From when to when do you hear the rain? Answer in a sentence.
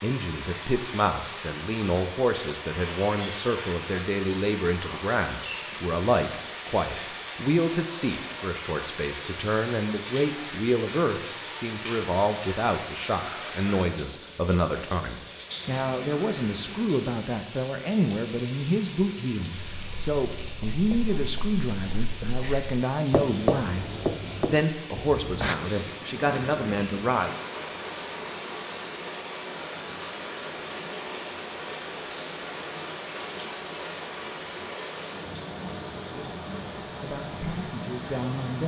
You can hear the rain from 0.0 to 38.6 s.